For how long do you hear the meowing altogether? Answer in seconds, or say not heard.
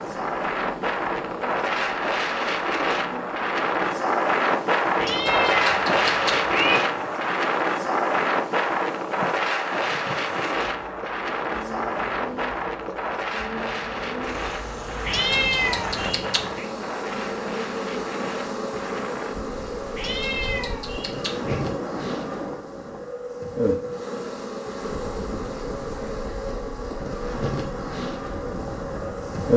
5 s.